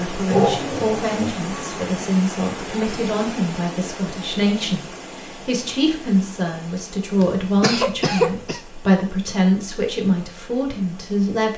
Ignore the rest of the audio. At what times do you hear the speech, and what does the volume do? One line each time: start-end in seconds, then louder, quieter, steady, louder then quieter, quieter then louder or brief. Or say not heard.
0.0-11.5 steady.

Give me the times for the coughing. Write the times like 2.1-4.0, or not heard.
0.2-1.4, 7.2-8.6.